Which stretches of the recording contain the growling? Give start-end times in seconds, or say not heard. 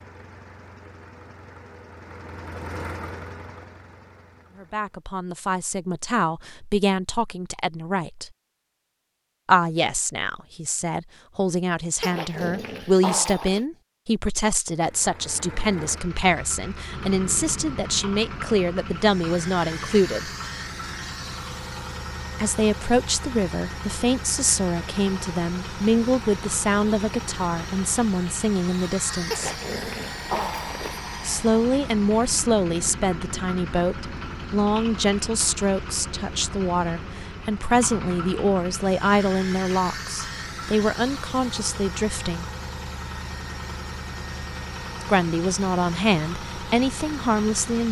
12.0-13.7, 29.3-31.0.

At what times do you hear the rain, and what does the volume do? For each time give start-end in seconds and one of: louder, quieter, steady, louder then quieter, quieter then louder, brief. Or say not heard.
not heard.